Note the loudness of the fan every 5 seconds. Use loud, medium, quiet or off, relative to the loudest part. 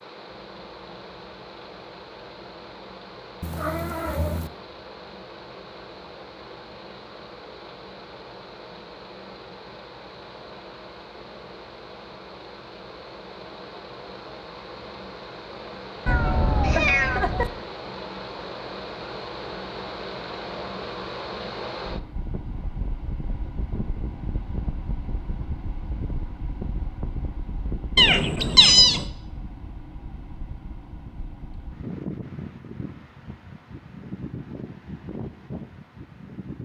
medium, medium, medium, loud, loud, loud, loud, loud.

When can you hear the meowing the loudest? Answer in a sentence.
The volume of the meowing peaks at 29 seconds.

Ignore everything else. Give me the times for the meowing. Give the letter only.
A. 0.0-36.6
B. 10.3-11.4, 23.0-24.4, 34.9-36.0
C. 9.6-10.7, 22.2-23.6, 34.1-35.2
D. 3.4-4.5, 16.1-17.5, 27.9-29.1
D.